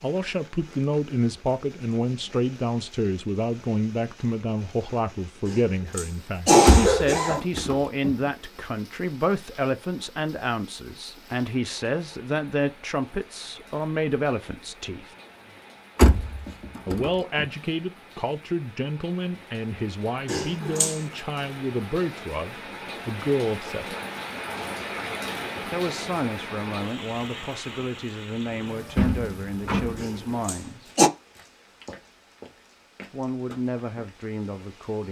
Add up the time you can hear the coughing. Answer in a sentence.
You can hear the coughing for 4 seconds altogether.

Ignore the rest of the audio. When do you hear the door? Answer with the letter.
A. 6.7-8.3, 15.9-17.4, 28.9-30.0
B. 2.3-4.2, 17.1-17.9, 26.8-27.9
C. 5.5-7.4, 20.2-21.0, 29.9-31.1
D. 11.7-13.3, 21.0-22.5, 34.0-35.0
A.